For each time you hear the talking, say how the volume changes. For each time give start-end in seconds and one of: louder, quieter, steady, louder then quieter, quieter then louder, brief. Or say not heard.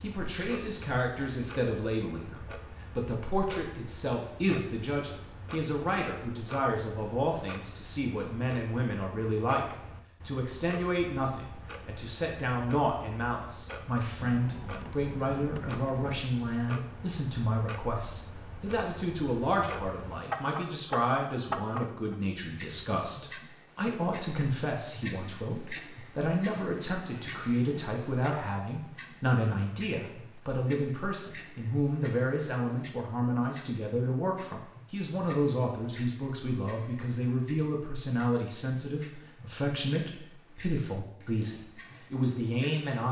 0.0-43.0 steady.